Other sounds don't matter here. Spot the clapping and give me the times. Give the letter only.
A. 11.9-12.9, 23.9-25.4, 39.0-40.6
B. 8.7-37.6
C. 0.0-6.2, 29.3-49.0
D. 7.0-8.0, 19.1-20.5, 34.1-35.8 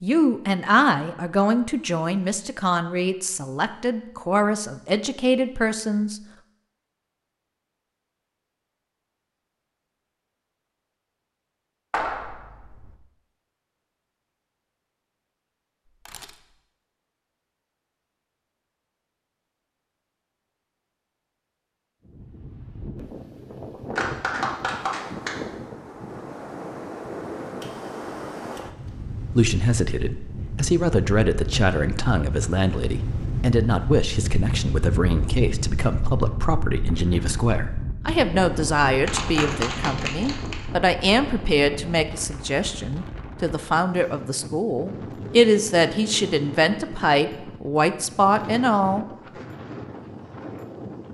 A.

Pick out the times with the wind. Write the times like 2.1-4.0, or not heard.
22.1-51.0.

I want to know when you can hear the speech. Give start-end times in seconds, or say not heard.
0.0-6.2, 29.3-49.0.